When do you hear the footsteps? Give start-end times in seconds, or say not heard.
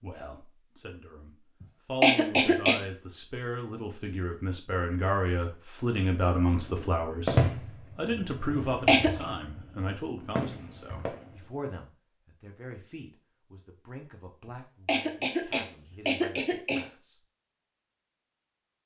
not heard.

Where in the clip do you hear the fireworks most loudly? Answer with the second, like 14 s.
7 s.